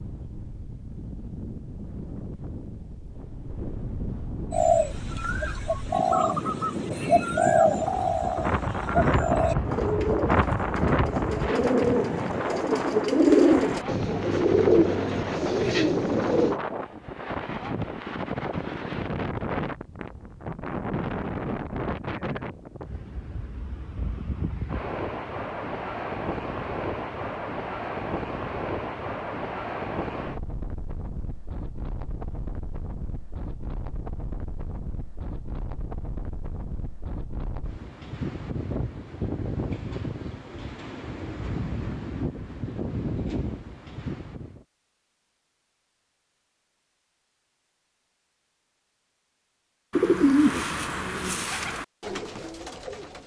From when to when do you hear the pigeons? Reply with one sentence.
You can hear the pigeons from 4.5 to 16.6 s and from 49.9 to 53.2 s.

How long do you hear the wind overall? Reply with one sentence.
You can hear the wind for 45 seconds altogether.